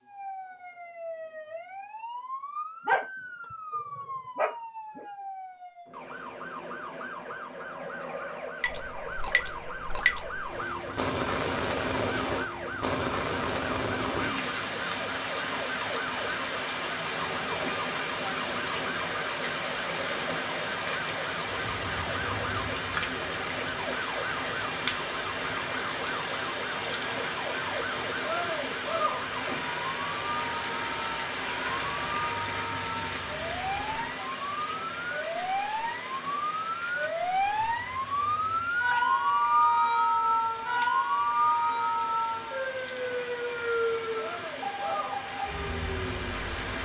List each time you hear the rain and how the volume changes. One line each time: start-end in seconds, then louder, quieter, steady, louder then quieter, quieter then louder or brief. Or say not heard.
8.6-46.7 quieter.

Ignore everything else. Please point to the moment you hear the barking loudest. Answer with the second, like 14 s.
3 s.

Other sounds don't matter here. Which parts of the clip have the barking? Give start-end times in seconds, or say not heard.
2.9-5.0.